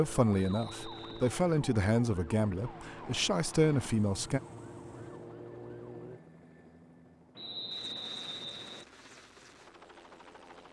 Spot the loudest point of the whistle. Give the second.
8 s.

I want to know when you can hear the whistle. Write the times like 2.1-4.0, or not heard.
0.5-1.2, 7.3-8.8.